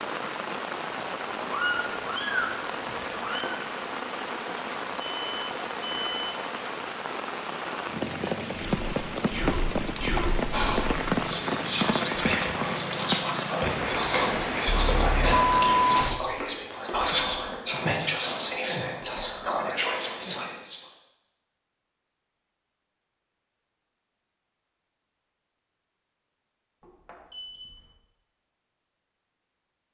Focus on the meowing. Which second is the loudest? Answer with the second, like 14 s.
2 s.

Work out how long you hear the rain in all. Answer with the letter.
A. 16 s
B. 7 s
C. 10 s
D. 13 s
A.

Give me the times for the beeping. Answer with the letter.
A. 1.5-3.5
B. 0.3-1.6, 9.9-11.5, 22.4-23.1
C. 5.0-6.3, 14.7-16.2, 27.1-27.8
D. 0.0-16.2
C.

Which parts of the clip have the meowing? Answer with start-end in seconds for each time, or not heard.
1.5-3.5.